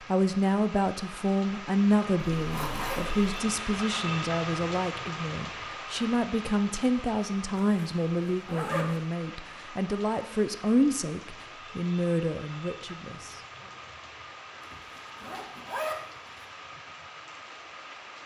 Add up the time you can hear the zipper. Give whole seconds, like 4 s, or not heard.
4 s.